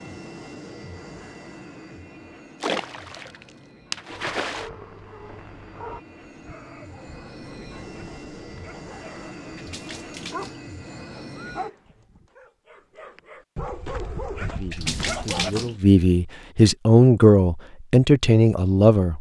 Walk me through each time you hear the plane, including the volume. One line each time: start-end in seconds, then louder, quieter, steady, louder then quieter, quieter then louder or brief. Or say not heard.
0.0-12.1 quieter then louder.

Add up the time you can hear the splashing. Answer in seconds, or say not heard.
4 s.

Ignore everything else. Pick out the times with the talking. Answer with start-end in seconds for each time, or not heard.
14.5-19.1.